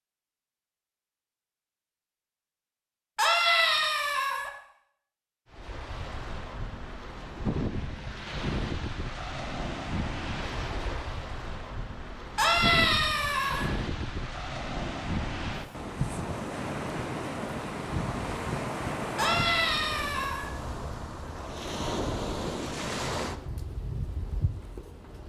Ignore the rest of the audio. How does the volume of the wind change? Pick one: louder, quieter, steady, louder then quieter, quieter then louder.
steady.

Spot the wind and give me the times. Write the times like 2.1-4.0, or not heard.
5.5-25.2.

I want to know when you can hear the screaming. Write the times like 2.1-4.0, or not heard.
3.1-4.5, 12.3-13.7, 19.1-20.5.